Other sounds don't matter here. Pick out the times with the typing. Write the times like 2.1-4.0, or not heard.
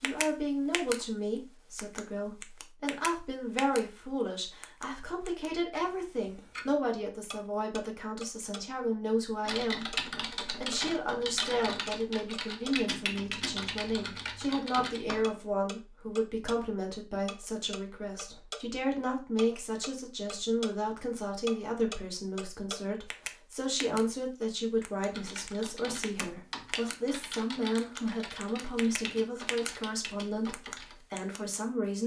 9.4-15.3, 25.1-31.0.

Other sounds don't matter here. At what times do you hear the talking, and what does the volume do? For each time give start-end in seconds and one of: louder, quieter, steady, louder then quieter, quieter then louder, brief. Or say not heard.
0.0-32.0 steady.